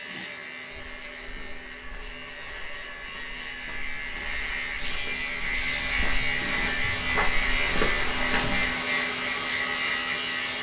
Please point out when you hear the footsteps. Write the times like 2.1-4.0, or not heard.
0.7-8.7.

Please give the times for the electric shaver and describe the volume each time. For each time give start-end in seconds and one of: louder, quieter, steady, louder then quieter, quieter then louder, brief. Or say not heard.
0.0-10.5 louder.